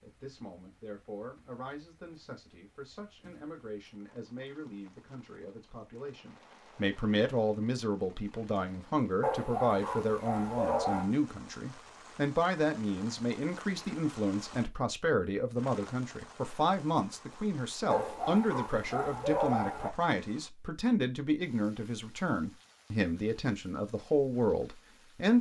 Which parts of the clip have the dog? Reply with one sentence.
The dog can be heard from 9.2 to 11.1 s and from 17.9 to 19.9 s.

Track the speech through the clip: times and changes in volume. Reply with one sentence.
The speech can be heard from 0.0 to 25.3 s, getting louder.